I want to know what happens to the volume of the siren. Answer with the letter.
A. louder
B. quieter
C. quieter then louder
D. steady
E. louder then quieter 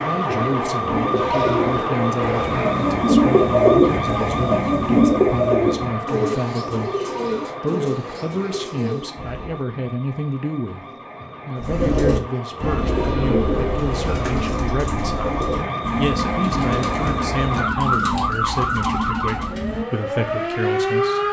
C.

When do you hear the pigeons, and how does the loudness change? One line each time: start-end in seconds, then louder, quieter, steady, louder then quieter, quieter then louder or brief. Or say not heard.
0.8-9.7 louder then quieter
11.6-20.4 quieter.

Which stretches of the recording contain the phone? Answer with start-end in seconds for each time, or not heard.
not heard.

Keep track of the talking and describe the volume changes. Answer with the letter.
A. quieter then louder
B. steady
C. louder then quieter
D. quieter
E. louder
B.